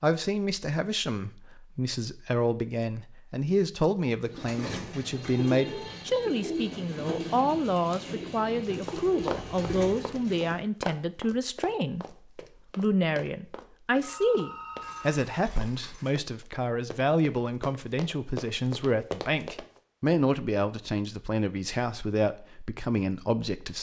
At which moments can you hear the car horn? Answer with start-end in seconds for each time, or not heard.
not heard.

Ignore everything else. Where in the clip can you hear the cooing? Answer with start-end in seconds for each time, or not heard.
4.2-10.6.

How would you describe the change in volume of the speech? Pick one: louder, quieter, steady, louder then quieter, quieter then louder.
steady.